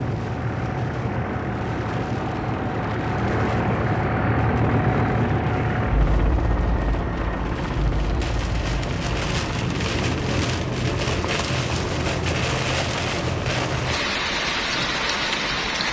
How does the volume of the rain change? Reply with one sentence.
The loudness of the rain goes down, then up.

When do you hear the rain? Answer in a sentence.
You can hear the rain from 0.0 to 15.8 s.